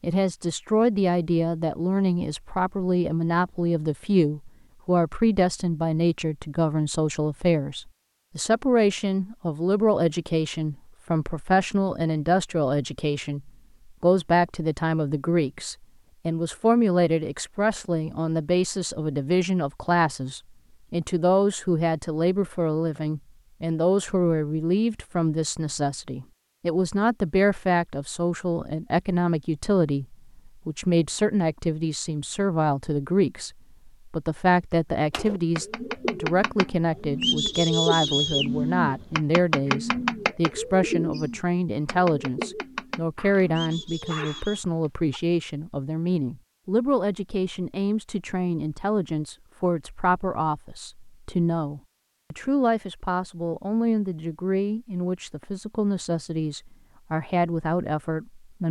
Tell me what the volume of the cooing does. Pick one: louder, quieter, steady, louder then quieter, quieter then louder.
louder then quieter.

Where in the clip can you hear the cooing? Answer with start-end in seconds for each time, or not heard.
35.1-44.6.